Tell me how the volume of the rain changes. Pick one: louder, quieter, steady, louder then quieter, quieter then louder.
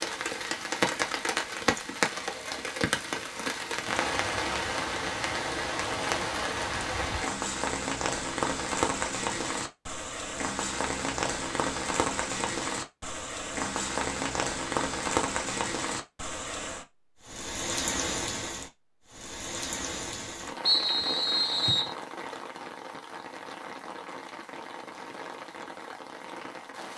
quieter.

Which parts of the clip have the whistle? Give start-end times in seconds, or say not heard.
20.6-21.9.